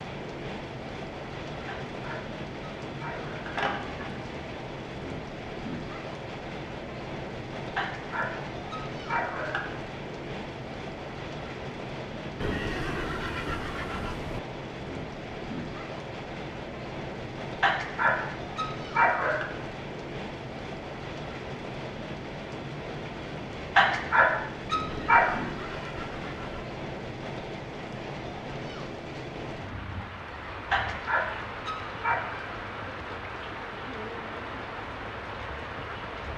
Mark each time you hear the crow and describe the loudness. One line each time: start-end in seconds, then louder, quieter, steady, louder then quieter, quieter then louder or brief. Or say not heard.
not heard.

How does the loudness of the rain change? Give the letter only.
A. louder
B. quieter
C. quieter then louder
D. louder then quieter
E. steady
E.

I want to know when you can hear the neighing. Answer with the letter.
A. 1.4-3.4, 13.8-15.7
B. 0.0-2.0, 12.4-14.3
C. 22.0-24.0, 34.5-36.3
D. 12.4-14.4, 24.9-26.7
D.